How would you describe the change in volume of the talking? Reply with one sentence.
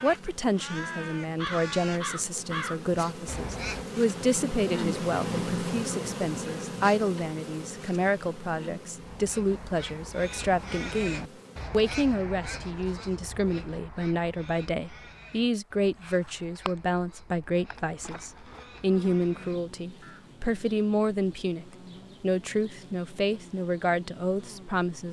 The volume of the talking stays about the same.